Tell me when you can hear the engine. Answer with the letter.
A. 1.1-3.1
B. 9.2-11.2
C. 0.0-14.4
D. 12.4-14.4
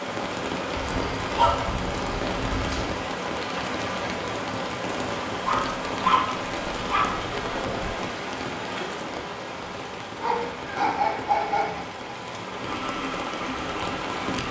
D.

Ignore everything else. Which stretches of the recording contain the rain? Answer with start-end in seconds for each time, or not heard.
0.0-14.4.